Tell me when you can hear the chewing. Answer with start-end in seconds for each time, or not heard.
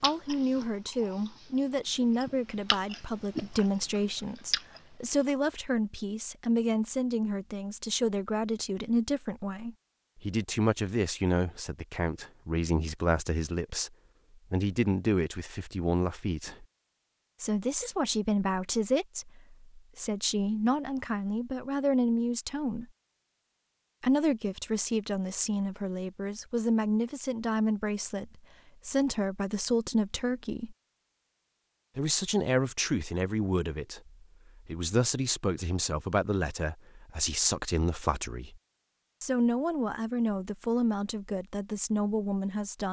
0.0-3.6, 4.5-5.3.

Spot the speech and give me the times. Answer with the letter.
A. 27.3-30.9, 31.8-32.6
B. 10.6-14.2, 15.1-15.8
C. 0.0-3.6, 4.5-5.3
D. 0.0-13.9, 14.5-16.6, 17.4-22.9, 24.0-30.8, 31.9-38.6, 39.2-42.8
D.